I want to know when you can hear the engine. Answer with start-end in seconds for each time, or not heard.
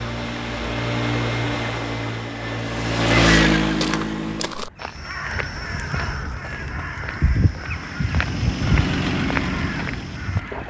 0.0-4.5, 7.7-10.6.